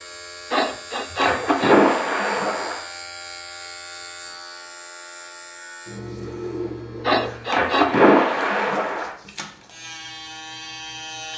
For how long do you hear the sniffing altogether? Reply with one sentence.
You can hear the sniffing for 2 seconds altogether.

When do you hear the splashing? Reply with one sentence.
The splashing can be heard from 1.2 to 2.8 s and from 7.5 to 9.2 s.